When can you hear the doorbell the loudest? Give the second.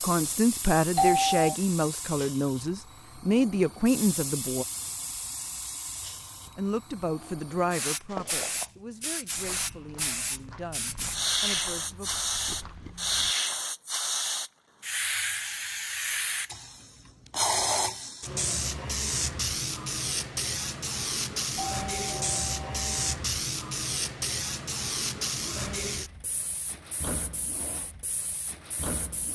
1 s.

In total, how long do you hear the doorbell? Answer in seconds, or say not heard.
2 s.